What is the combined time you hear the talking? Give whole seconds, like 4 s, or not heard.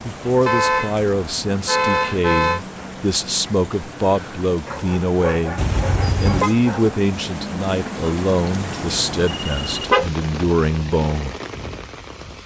11 s.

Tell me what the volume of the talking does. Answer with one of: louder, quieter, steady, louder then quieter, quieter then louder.
steady.